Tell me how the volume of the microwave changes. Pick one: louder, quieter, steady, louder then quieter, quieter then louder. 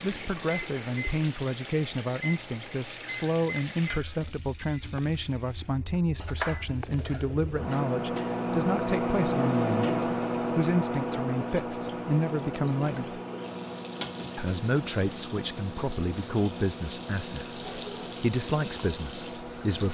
louder then quieter.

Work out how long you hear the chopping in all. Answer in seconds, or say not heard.
2 s.